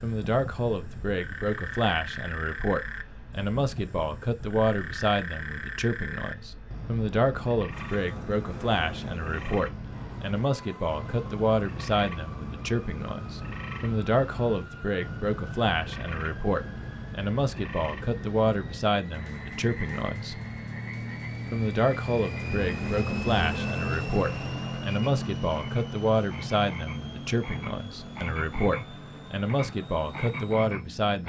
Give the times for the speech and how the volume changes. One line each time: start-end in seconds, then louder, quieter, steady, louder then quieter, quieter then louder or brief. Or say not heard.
0.0-20.4 steady
21.5-31.2 steady.